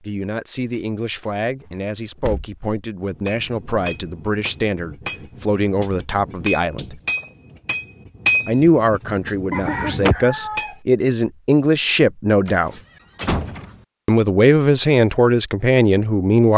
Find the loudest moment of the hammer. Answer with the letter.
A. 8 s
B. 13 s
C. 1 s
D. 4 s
A.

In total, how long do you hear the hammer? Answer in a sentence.
The hammer can be heard for 8 seconds in total.